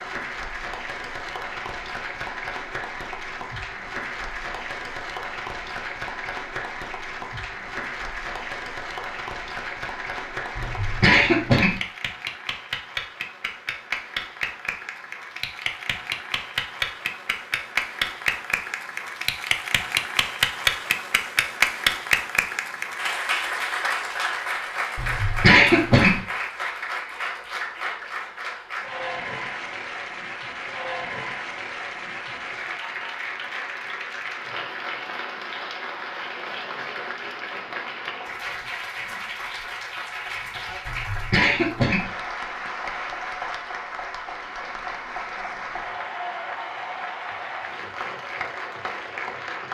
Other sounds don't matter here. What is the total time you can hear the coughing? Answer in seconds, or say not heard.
4 s.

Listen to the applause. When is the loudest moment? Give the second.
22 s.